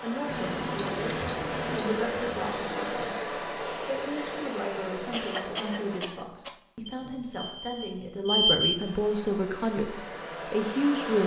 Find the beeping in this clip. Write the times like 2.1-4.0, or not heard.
0.2-2.0, 6.8-8.8.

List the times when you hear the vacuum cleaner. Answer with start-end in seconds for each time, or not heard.
0.0-6.0, 8.8-11.2.